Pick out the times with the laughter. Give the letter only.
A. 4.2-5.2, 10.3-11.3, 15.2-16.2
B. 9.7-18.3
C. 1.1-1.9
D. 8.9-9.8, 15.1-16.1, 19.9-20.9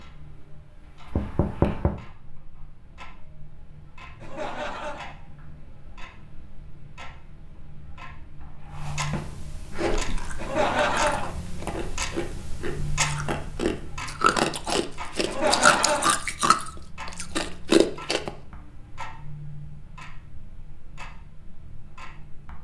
A.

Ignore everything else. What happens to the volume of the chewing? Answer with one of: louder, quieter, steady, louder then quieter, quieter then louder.
louder.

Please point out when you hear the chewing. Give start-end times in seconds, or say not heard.
9.7-18.3.